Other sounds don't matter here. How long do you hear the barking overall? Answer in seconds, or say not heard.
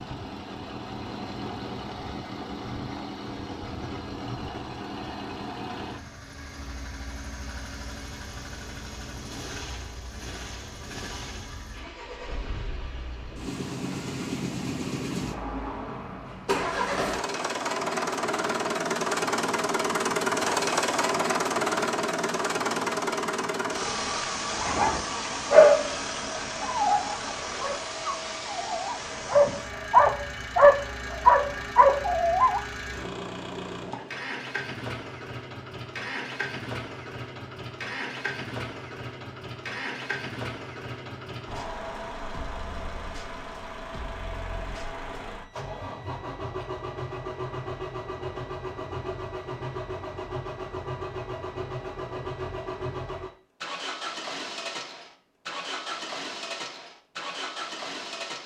8 s.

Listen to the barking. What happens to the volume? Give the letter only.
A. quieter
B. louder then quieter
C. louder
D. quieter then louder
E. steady
D.